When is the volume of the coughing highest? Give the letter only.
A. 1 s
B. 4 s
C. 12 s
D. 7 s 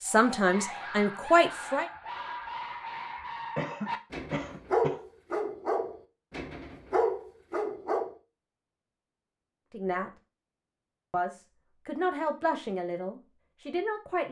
B.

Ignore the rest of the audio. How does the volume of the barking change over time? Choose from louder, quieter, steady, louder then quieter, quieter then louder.
louder.